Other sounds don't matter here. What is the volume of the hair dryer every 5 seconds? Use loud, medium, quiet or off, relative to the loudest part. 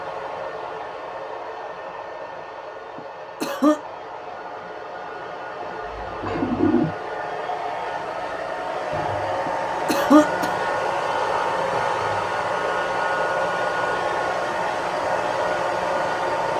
medium, medium, loud, loud.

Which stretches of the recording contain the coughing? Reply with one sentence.
The coughing can be heard from 3.0 to 3.8 s and from 9.4 to 10.6 s.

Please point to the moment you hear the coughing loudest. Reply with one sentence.
The volume of the coughing peaks at 10 seconds.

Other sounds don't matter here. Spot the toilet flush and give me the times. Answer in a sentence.
The toilet flush can be heard from 5.8 to 7.0 s.